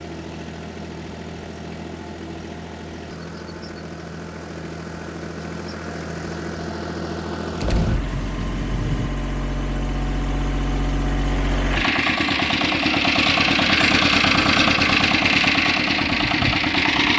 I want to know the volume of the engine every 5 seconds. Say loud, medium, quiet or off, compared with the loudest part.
quiet, medium, loud, loud.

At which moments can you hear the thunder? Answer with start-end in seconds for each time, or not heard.
7.6-9.1.